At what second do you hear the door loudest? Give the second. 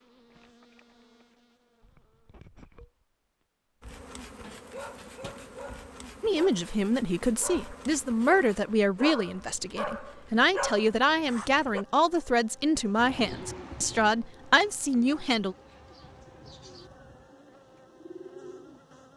5 s.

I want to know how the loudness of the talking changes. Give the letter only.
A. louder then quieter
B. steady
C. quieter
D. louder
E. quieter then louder
B.